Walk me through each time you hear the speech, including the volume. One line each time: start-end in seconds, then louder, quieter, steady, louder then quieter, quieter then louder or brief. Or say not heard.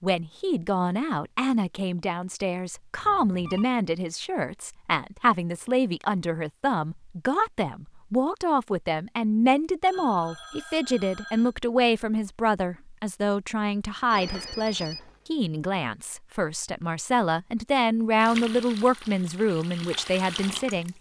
0.0-20.9 steady.